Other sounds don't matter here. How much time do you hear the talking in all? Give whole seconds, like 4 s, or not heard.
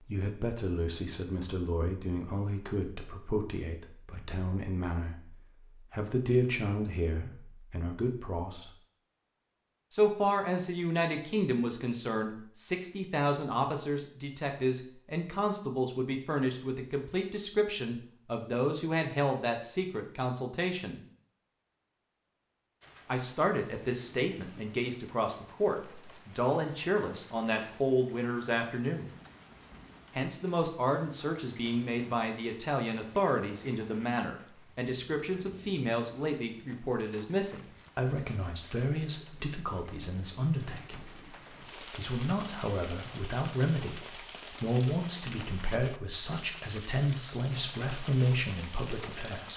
45 s.